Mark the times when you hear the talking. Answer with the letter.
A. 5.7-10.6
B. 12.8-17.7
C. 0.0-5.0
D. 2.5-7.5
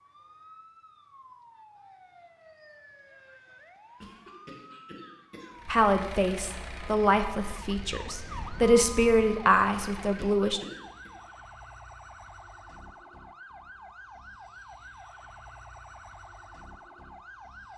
A.